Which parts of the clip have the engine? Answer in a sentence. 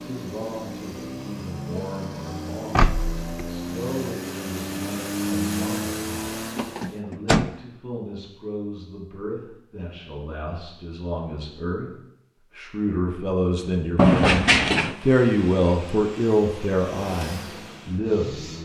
You can hear the engine from 0.0 to 7.0 s and from 14.8 to 18.6 s.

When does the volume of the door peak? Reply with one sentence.
The volume of the door peaks at 14 seconds.